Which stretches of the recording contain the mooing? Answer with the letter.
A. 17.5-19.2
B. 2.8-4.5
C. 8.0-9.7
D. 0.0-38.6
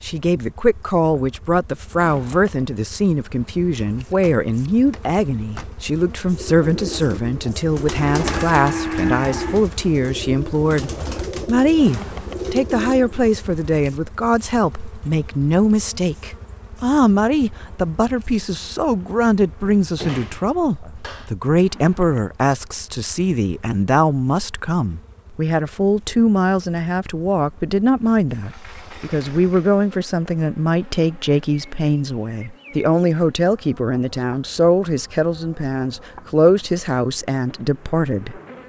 C.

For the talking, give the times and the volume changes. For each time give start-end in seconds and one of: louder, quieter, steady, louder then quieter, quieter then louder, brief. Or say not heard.
0.0-38.6 steady.